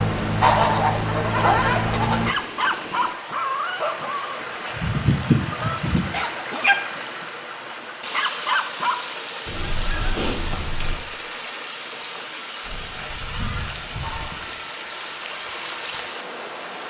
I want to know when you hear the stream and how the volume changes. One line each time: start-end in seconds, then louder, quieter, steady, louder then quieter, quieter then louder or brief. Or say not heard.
0.0-16.8 steady.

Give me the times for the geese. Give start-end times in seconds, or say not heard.
0.4-2.2, 4.7-6.0, 9.4-11.0, 12.6-14.4.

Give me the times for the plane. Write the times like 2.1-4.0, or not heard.
0.0-2.4.